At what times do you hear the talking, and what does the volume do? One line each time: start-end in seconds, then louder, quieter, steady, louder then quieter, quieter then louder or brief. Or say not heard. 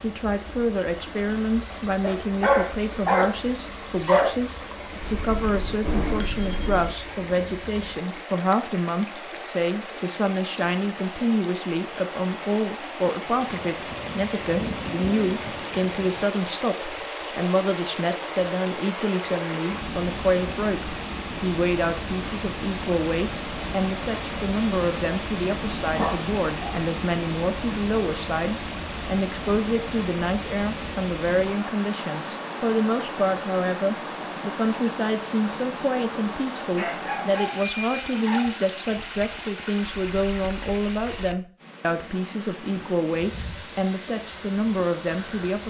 0.0-45.6 steady.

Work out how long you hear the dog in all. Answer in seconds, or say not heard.
5 s.